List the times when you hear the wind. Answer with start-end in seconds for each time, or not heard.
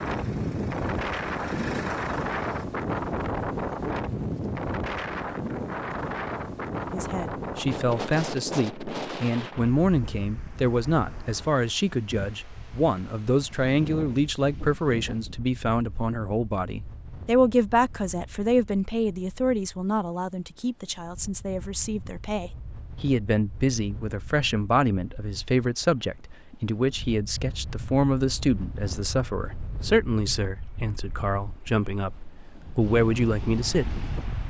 0.0-34.4.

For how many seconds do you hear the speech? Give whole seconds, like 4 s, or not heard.
27 s.